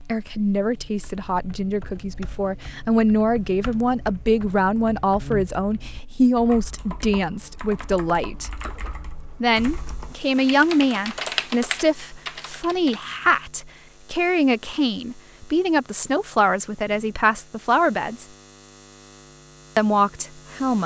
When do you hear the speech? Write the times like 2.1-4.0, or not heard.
0.1-8.5, 9.4-18.2, 19.8-20.8.